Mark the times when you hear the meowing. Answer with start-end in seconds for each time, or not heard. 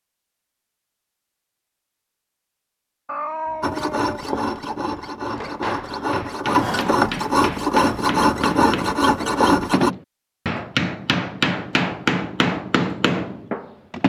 3.0-4.2.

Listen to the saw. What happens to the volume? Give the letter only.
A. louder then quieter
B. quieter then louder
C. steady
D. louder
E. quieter
D.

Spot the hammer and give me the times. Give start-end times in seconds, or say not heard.
5.2-14.0.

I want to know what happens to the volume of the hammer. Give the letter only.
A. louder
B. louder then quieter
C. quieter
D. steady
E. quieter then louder
A.